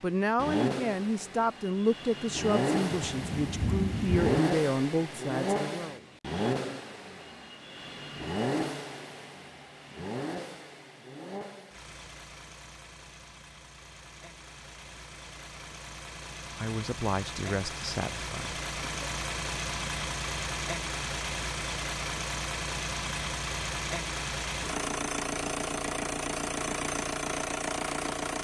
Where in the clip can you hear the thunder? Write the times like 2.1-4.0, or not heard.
2.9-4.4.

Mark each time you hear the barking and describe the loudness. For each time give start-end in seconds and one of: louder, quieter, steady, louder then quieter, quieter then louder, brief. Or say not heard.
not heard.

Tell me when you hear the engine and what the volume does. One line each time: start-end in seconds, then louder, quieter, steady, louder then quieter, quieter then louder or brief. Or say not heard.
0.0-28.3 quieter then louder.